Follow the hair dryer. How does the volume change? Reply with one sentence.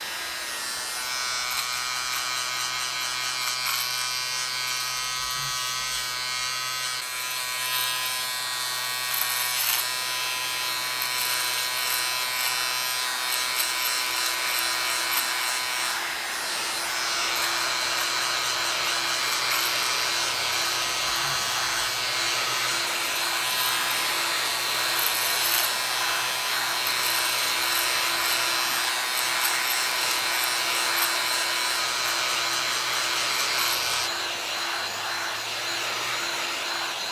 The volume of the hair dryer goes up.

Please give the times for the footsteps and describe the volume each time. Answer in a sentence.
The footsteps can't be heard in this clip.